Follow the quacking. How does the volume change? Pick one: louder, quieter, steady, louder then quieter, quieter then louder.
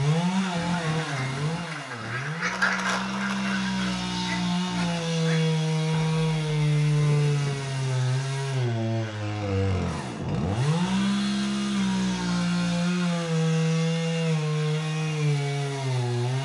louder then quieter.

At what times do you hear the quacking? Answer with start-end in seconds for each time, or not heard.
0.3-5.6.